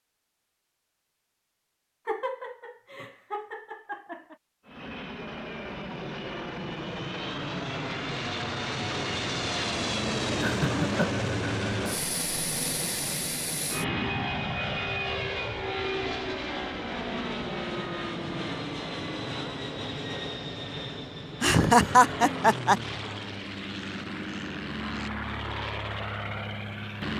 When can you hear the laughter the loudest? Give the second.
22 s.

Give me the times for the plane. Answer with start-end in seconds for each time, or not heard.
4.7-27.1.